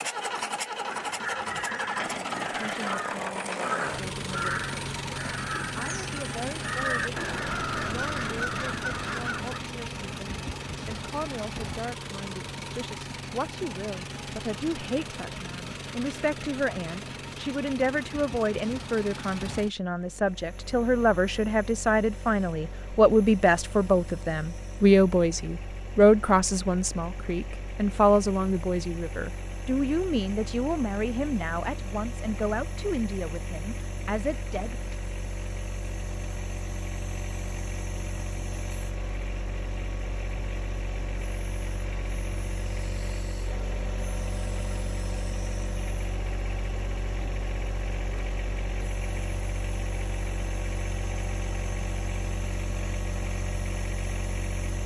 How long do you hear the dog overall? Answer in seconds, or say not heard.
not heard.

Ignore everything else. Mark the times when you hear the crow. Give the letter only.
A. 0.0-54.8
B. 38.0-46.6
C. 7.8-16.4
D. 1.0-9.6
D.